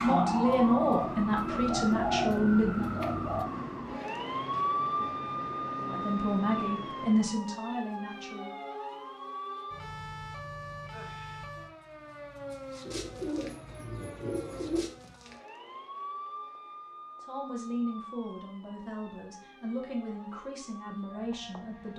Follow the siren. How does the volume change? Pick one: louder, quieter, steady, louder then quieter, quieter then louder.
quieter.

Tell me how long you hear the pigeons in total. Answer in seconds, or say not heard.
5 s.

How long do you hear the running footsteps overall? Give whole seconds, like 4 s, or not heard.
not heard.